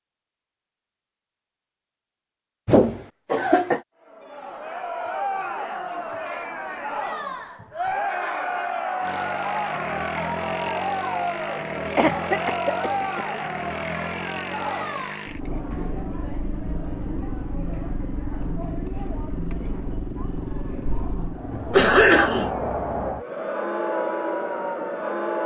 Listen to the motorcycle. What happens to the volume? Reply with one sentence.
The volume of the motorcycle stays about the same.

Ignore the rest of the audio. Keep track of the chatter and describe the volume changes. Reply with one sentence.
The loudness of the chatter goes down, then up.